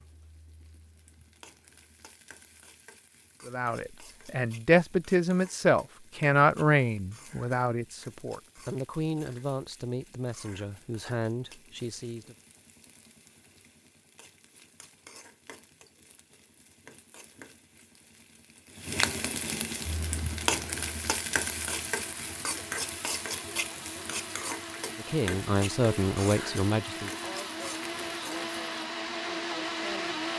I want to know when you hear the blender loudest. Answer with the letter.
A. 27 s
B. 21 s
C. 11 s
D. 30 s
D.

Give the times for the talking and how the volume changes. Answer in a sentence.
The talking can be heard from 3.5 to 12.3 s, getting quieter; and briefly from 24.9 to 27.1 s.